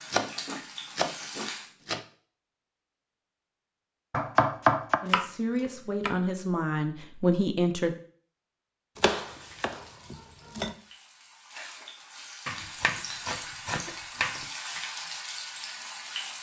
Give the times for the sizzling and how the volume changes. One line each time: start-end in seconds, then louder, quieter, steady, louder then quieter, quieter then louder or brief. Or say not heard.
0.0-1.7 brief
9.2-16.3 louder.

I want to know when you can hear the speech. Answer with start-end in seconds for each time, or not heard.
5.0-8.0.